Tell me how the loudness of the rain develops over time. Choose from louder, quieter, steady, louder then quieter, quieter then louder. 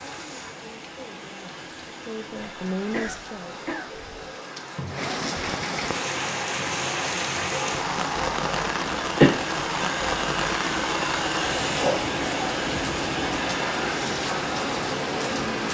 louder.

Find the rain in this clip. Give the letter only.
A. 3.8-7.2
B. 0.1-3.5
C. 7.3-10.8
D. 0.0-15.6
D.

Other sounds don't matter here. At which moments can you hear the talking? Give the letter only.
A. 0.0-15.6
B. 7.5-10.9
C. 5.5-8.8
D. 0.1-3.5
D.